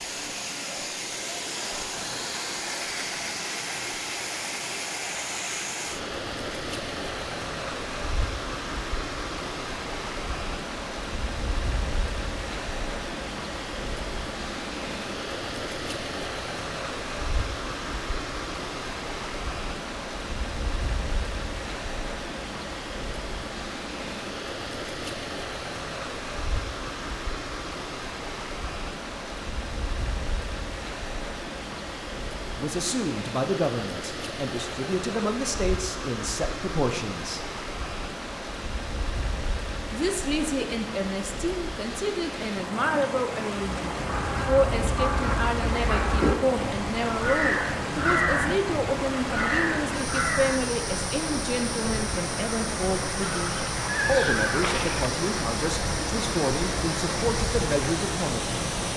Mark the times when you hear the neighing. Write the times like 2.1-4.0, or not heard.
53.2-55.1.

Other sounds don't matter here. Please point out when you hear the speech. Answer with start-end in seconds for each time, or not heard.
32.5-37.5, 39.9-58.7.